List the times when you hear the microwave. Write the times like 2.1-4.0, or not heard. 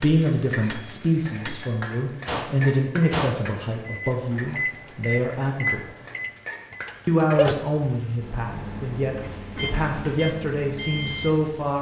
0.0-11.6.